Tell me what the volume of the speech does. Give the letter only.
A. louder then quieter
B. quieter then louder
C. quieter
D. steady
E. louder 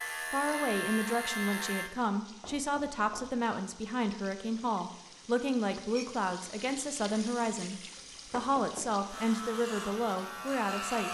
D.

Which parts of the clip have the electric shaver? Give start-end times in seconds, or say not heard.
0.0-1.9, 9.1-11.0.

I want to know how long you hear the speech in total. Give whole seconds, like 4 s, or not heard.
11 s.